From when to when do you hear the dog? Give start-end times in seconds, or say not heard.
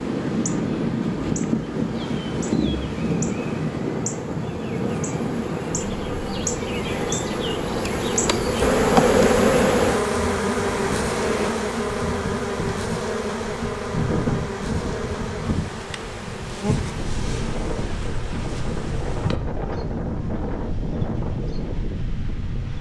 not heard.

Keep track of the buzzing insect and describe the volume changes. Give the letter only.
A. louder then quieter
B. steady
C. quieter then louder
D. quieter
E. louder
A.